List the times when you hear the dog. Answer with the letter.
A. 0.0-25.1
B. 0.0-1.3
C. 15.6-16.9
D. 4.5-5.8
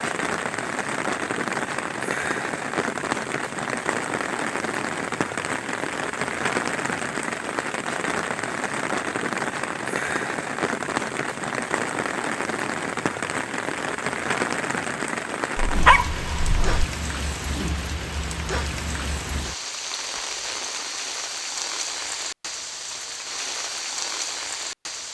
C.